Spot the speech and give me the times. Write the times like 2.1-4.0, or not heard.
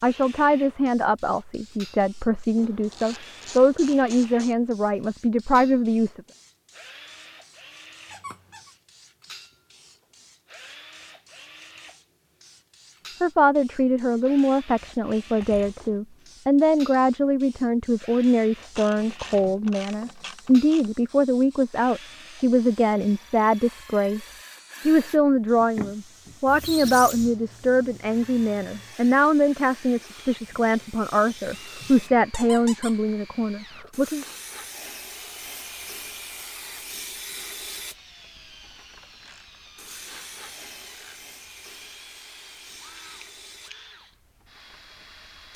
0.0-6.2, 13.2-34.2.